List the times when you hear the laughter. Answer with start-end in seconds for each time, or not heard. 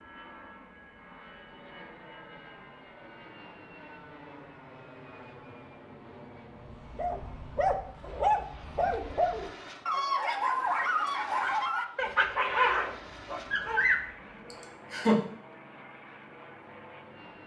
14.5-15.2.